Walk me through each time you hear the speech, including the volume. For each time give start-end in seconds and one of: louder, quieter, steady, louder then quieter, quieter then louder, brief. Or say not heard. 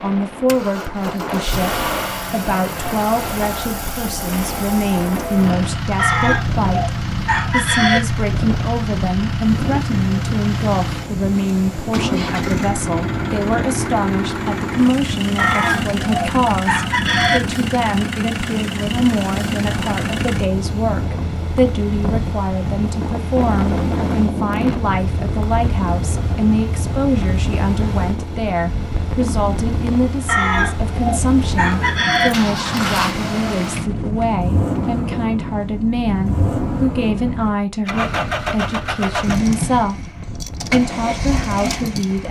0.0-40.0 steady
40.5-42.2 brief.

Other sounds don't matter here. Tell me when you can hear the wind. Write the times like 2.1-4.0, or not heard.
0.0-42.2.